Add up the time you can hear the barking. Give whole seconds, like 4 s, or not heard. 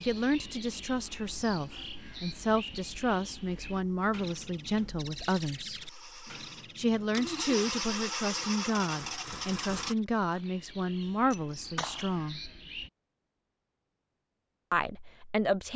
not heard.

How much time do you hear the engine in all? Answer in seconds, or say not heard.
10 s.